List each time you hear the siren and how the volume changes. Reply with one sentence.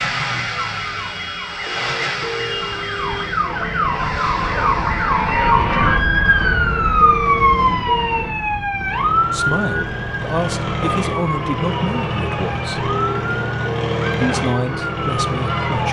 You can hear the siren from 0.0 to 15.8 s, getting louder then quieter.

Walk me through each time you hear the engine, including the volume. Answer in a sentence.
You can hear the engine from 0.0 to 15.8 s, getting quieter then louder.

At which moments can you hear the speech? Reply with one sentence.
The speech can be heard from 9.3 to 12.9 s and from 14.1 to 15.8 s.